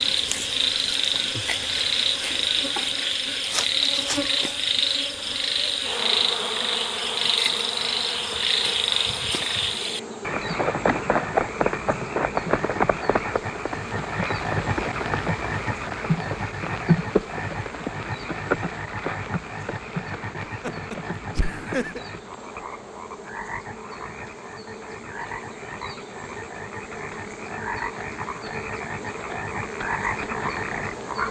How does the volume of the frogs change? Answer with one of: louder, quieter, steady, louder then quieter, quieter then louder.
quieter.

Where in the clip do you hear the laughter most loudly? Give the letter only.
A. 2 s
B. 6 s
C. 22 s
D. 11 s
C.